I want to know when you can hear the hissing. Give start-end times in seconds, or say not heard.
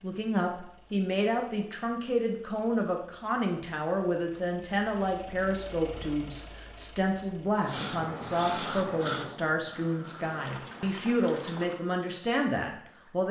7.7-10.9.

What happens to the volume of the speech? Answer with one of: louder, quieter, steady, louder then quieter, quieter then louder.
steady.